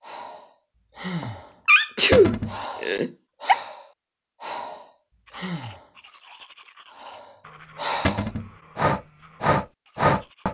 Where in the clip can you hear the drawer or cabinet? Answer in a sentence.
The drawer or cabinet can be heard from 2.1 to 2.5 s and from 8.1 to 8.5 s.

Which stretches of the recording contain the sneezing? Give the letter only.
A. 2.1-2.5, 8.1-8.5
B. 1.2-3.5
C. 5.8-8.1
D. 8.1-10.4
B.